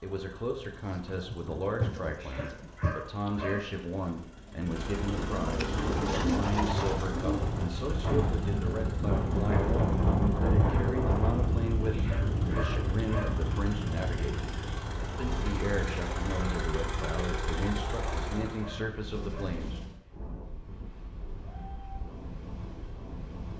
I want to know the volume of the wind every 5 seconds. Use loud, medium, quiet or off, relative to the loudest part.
off, loud, loud, medium, quiet.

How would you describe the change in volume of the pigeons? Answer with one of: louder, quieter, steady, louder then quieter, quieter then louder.
quieter then louder.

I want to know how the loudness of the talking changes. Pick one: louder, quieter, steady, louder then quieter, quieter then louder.
steady.